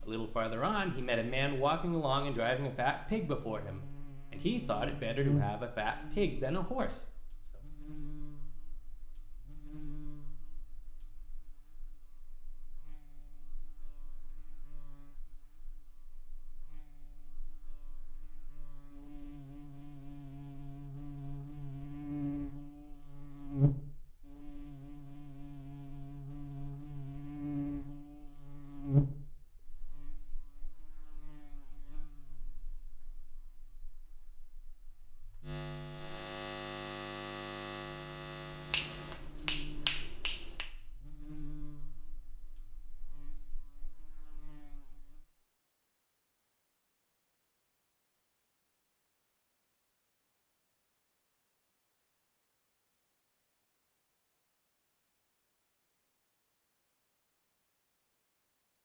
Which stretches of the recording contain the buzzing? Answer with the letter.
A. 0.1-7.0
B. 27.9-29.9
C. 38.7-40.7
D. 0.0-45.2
D.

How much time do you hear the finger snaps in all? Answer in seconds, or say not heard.
2 s.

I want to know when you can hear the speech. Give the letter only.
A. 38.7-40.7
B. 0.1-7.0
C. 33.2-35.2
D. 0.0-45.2
B.